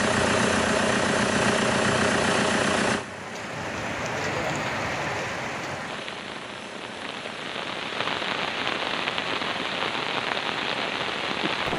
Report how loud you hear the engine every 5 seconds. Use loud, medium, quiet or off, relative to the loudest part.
loud, quiet, quiet.